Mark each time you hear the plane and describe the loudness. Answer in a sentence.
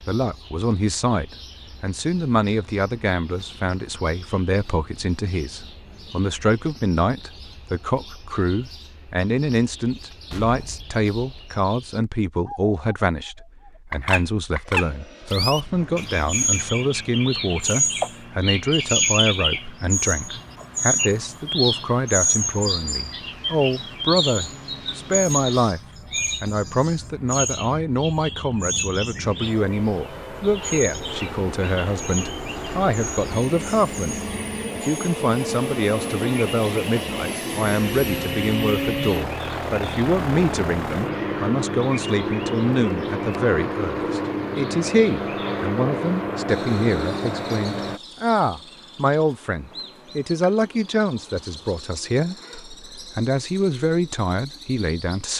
You can hear the plane from 14.7 to 48.0 s, getting louder.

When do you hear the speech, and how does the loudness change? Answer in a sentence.
The speech can be heard from 0.1 to 25.8 s, at a steady volume; and from 26.4 to 55.3 s, at a steady volume.